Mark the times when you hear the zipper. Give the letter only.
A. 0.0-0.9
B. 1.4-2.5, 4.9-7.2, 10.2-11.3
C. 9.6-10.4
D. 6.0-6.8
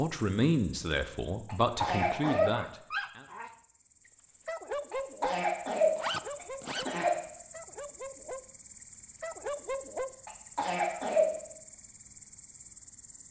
D.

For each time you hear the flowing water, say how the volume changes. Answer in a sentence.
You can't hear the flowing water here.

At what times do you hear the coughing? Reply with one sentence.
You can hear the coughing from 1.4 to 2.5 s, from 4.9 to 7.2 s and from 10.2 to 11.3 s.